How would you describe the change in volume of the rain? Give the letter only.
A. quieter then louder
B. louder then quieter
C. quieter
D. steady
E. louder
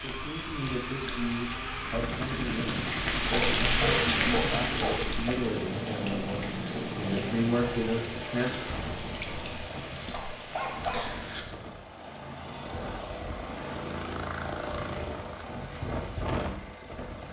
B.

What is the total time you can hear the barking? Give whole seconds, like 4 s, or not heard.
3 s.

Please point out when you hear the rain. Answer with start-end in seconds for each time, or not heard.
0.0-11.4.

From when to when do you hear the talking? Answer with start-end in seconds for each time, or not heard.
0.0-8.6.